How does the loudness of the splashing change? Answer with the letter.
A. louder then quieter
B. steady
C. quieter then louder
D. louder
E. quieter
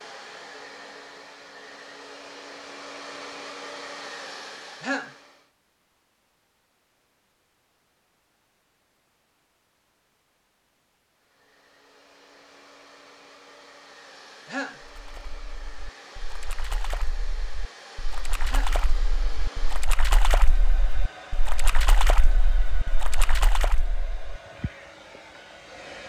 D.